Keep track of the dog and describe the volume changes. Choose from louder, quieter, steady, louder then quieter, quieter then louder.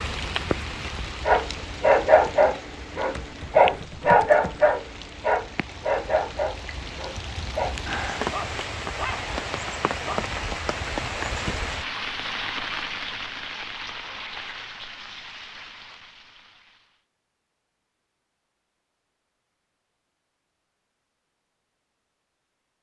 quieter.